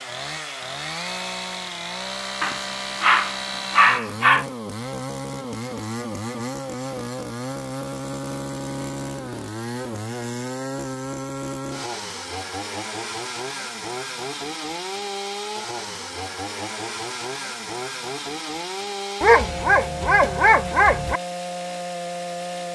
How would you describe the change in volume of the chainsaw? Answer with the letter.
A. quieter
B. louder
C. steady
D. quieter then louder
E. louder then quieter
C.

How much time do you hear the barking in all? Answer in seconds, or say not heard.
4 s.